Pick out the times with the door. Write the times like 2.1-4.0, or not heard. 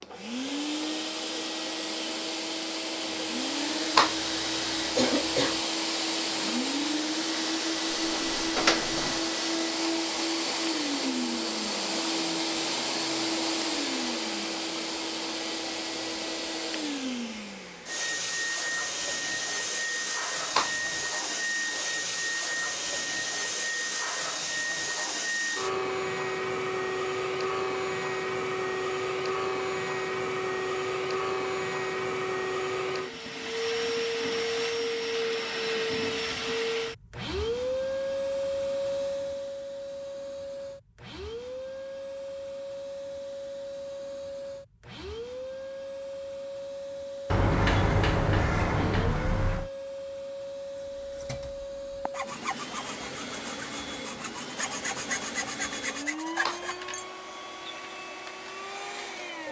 7.9-9.2, 47.3-49.7.